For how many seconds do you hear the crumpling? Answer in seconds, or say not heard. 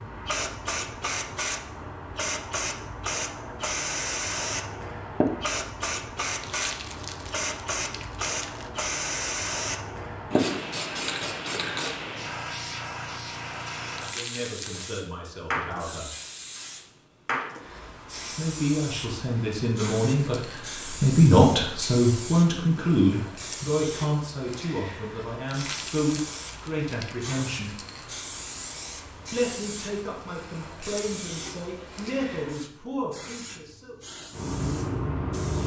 5 s.